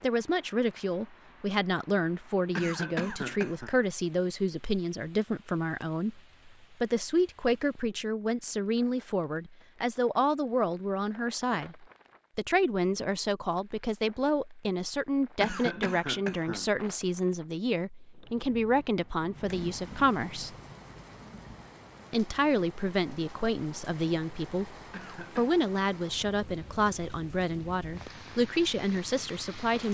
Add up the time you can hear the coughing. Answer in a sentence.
The coughing can be heard for 3 seconds in total.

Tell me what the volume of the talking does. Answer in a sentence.
The loudness of the talking stays about the same.